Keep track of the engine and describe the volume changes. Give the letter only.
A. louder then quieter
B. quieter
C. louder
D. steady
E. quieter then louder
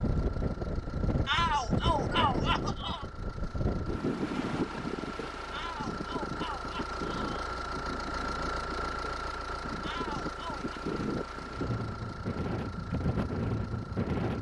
A.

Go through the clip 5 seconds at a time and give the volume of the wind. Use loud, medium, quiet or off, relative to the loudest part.
loud, medium, loud.